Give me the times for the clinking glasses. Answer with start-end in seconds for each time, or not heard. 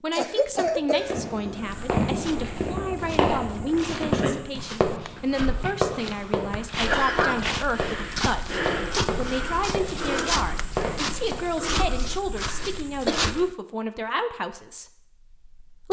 not heard.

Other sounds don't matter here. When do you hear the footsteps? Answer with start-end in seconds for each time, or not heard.
1.5-13.6.